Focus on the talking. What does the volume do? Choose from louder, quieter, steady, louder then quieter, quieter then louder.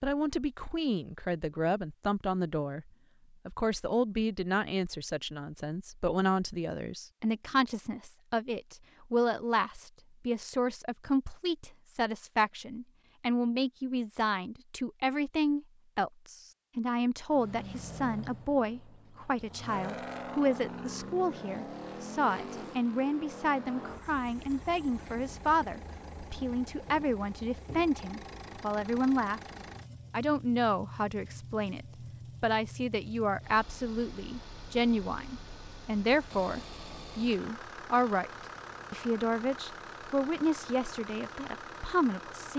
steady.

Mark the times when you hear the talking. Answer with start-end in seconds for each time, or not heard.
0.0-29.4, 30.1-42.5.